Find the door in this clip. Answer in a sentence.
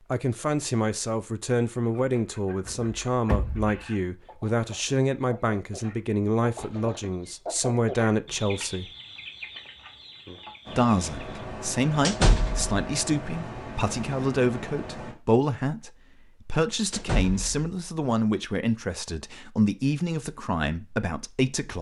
You can hear the door from 2.6 to 3.8 s, from 12.1 to 12.8 s and from 16.9 to 17.7 s.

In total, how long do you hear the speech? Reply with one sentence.
The speech can be heard for 20 seconds in total.